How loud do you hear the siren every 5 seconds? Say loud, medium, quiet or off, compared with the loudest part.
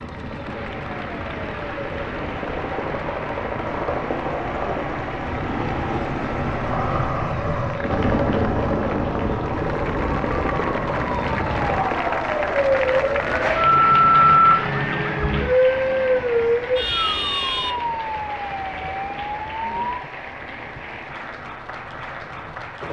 quiet, quiet, loud, loud, off.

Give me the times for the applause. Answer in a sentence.
You can hear the applause from 0.0 to 22.8 s.